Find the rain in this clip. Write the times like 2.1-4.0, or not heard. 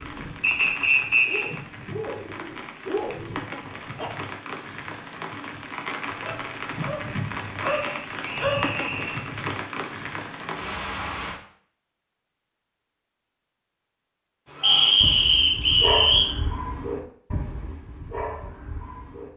0.0-11.4.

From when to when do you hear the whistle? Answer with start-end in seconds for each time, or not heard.
0.4-1.4, 7.6-9.2, 14.6-16.4.